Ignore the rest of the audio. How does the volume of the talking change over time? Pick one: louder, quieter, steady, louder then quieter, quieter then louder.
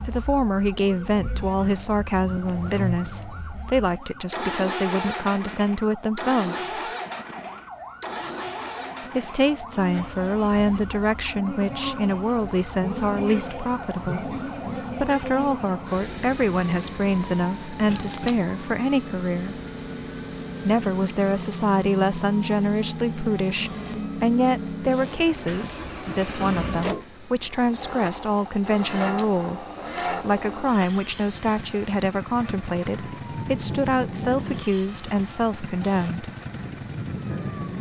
steady.